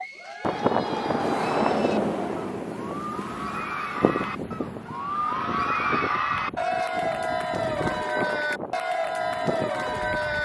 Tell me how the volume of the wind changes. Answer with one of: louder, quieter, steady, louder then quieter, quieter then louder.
quieter.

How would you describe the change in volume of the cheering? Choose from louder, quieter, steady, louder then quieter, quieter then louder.
louder.